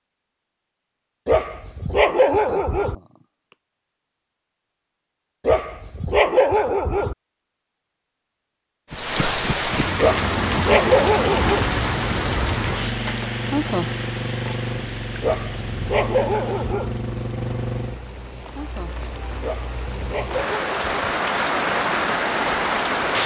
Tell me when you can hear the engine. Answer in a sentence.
The engine can be heard from 10.2 to 18.1 s.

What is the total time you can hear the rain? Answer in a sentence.
You can hear the rain for 14 seconds altogether.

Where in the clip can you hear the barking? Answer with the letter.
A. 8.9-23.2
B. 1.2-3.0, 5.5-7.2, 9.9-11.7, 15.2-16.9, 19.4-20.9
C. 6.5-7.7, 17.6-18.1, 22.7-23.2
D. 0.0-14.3
B.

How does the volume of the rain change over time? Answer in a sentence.
The loudness of the rain goes down, then up.